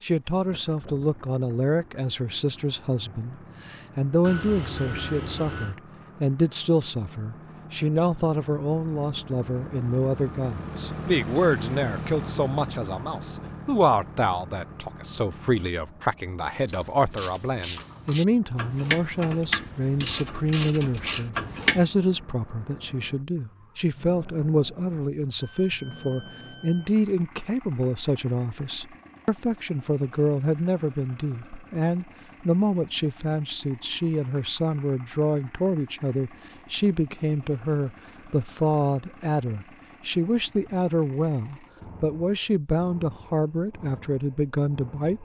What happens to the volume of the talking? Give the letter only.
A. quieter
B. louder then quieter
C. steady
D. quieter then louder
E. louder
C.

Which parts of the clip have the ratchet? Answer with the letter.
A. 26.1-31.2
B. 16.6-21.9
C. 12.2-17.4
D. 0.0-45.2
B.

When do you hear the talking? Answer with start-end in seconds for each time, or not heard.
0.0-45.2.